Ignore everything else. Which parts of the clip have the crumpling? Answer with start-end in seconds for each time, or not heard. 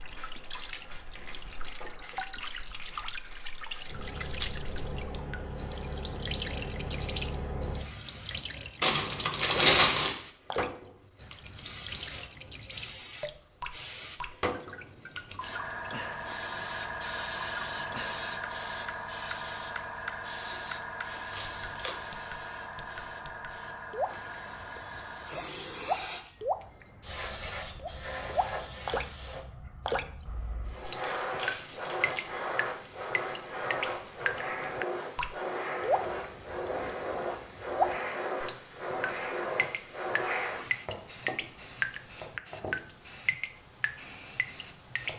8.8-10.2, 21.3-21.9, 30.9-32.2.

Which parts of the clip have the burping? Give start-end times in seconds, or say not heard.
not heard.